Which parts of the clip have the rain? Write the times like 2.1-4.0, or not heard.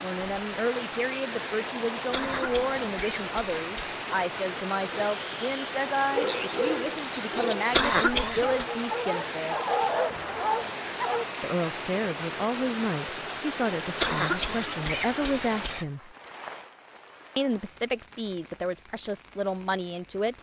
0.0-20.3.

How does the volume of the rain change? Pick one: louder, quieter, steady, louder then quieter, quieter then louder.
quieter.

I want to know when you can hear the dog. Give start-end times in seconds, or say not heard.
4.9-11.3.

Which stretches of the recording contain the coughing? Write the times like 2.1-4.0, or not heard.
2.1-4.0, 7.7-8.7, 14.0-15.9.